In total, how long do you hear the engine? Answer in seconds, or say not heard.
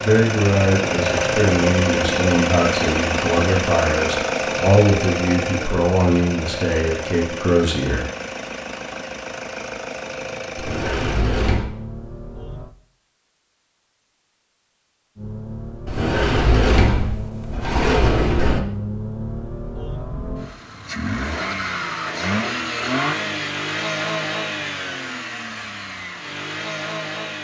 25 s.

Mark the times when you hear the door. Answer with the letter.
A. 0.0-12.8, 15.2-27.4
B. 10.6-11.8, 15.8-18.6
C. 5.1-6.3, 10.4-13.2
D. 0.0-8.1
B.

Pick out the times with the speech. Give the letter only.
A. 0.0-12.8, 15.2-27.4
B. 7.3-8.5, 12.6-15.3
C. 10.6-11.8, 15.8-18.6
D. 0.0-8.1
D.